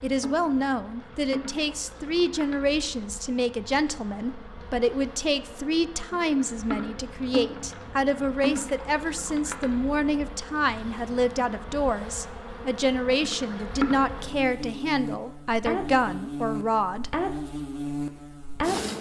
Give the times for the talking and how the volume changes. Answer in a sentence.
The talking can be heard from 0.0 to 17.1 s, at a steady volume.